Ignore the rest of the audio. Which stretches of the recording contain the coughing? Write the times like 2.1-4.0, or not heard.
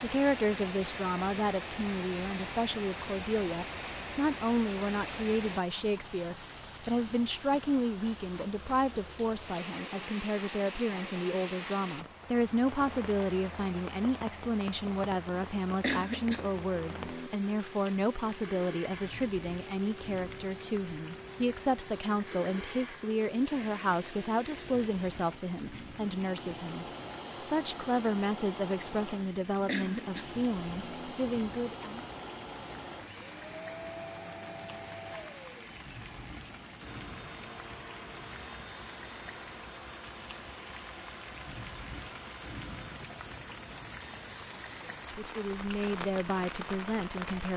15.3-17.3, 29.1-31.1.